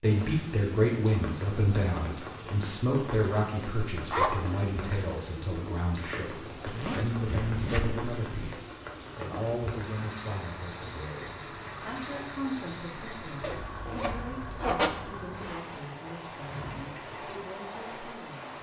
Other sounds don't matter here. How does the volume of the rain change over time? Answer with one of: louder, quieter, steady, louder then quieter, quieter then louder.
steady.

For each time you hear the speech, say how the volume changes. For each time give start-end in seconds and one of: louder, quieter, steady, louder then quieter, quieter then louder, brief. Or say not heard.
0.0-18.5 quieter.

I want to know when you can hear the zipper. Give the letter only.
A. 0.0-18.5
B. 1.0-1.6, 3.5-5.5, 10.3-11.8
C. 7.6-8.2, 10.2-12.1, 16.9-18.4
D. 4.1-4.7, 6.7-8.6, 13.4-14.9
D.